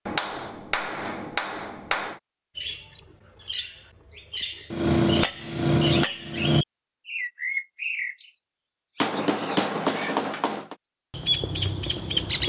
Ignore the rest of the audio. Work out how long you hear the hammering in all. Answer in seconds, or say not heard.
6 s.